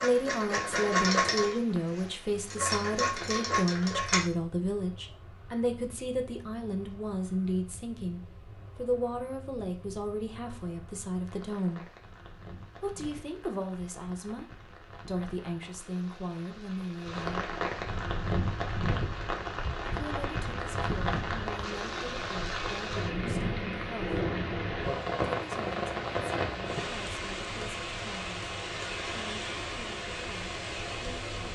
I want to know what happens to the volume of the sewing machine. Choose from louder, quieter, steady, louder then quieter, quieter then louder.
quieter then louder.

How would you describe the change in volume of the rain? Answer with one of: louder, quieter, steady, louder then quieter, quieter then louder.
louder.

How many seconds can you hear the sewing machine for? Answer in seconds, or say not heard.
4 s.